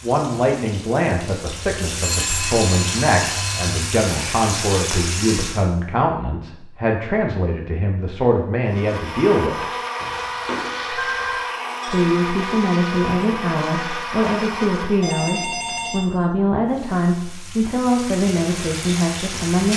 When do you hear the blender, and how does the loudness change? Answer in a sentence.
You can hear the blender from 8.7 to 15.2 s, at a steady volume.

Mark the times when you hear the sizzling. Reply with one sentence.
The sizzling can be heard from 0.0 to 5.7 s and from 16.6 to 19.7 s.